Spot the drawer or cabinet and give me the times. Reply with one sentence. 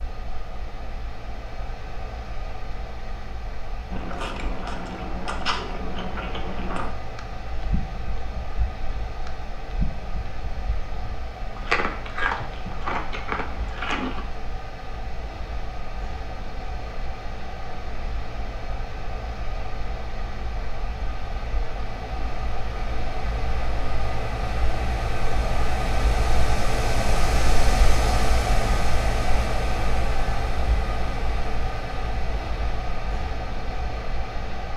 You can't hear the drawer or cabinet here.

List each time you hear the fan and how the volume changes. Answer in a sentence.
You can hear the fan from 0.0 to 34.7 s, getting louder.